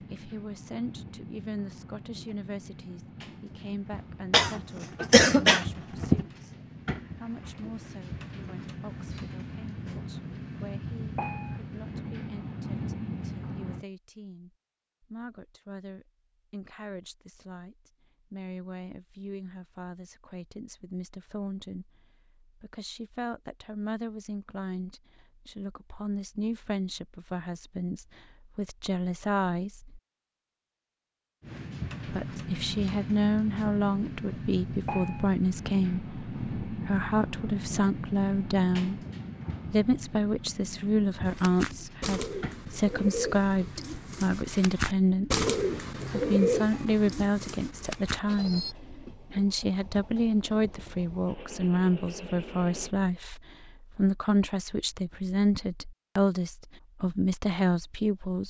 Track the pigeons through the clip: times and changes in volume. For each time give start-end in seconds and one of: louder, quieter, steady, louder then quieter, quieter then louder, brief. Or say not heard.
41.2-48.8 louder then quieter.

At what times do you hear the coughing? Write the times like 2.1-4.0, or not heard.
4.3-6.2.